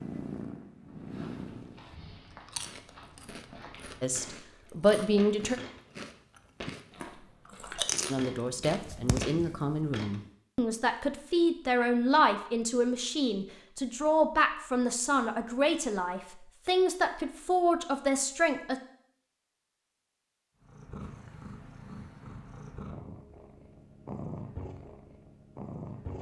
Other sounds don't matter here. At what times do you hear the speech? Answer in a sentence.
You can hear the speech from 4.0 to 5.5 s and from 8.1 to 18.8 s.